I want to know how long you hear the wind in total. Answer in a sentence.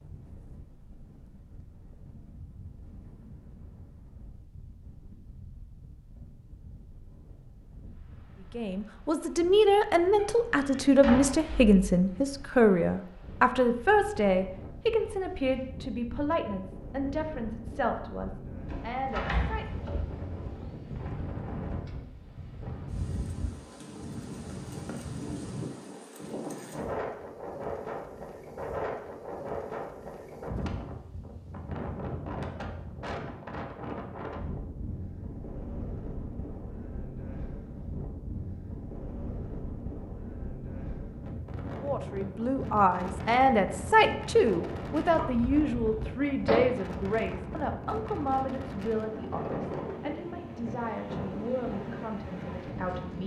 The wind can be heard for 53 seconds in total.